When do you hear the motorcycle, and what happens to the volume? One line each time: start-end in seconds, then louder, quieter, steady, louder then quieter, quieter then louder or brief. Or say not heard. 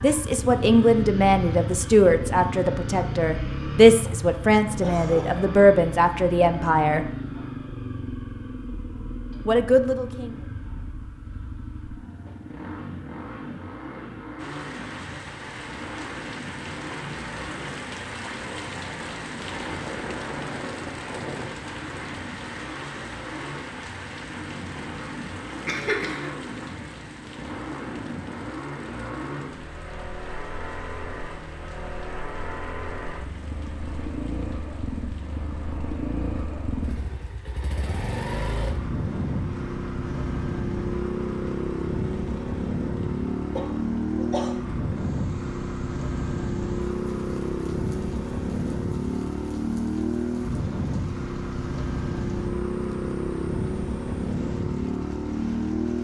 0.0-55.9 quieter then louder.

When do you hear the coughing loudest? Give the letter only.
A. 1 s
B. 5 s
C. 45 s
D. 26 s
D.